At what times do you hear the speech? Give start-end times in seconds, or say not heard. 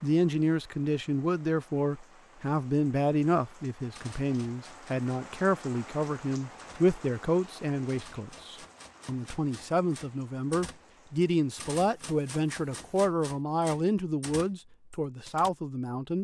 0.0-16.1.